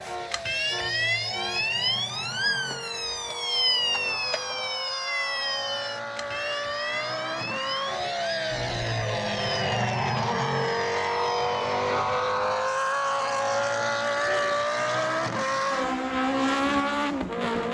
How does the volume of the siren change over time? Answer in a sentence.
The volume of the siren goes down.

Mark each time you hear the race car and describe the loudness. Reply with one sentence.
The race car can be heard from 0.0 to 17.6 s, getting louder.